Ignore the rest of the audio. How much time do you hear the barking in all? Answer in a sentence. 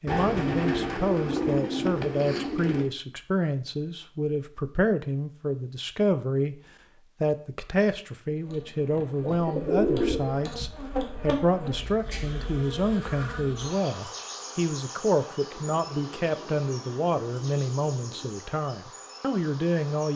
You can't hear the barking here.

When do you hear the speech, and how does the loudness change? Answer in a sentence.
You can hear the speech from 0.0 to 6.6 s, at a steady volume; and from 7.2 to 20.1 s, at a steady volume.